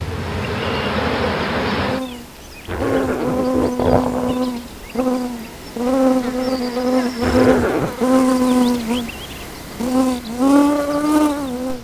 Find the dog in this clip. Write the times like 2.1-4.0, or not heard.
not heard.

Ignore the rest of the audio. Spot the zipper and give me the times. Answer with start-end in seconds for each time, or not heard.
2.6-4.3, 7.2-8.0.